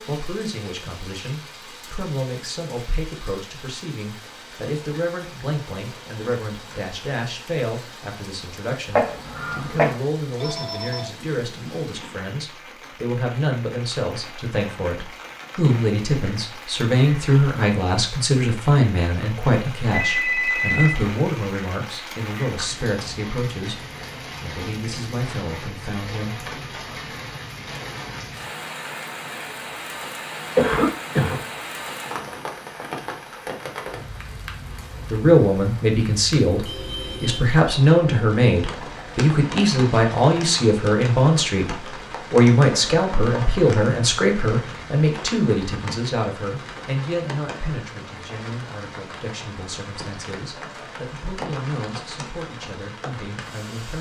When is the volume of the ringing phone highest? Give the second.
20 s.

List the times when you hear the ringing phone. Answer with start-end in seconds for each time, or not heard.
10.4-12.2, 19.9-21.0, 36.6-37.4.